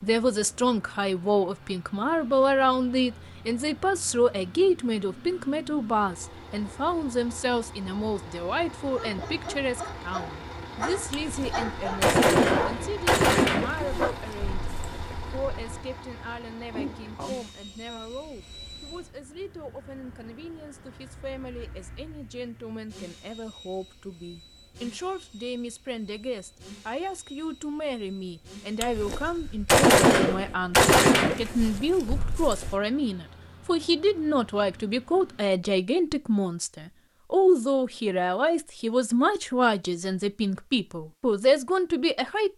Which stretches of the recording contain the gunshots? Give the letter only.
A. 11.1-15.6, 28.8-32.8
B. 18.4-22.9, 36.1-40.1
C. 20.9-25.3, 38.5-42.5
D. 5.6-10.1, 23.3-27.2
A.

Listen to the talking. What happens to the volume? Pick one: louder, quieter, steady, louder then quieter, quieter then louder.
quieter then louder.